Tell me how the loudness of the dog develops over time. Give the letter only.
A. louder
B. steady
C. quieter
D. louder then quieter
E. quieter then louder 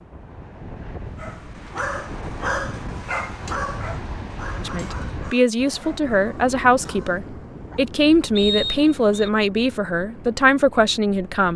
C.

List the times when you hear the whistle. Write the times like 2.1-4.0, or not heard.
8.3-9.3.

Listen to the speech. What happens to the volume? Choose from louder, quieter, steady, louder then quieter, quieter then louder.
steady.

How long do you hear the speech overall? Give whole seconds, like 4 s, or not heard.
7 s.